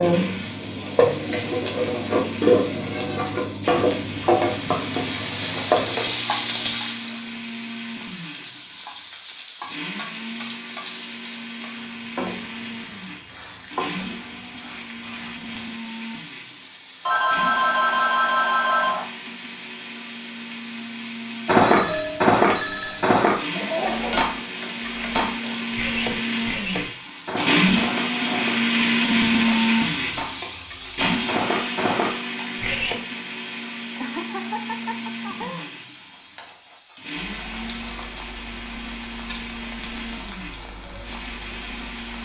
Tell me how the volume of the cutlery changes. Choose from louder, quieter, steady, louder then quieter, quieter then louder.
quieter then louder.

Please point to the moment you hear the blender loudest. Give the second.
29 s.